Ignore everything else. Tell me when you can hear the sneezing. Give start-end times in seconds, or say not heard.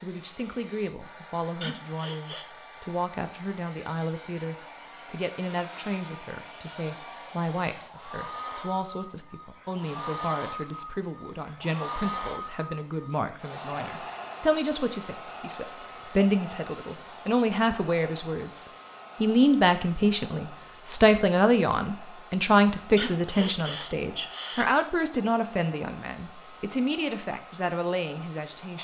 1.6-2.5, 22.9-24.6.